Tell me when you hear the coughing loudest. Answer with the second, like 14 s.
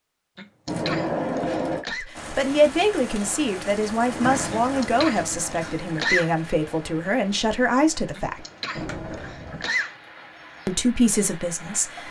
6 s.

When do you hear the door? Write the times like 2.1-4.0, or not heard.
0.7-1.9, 4.0-5.8, 8.8-9.7.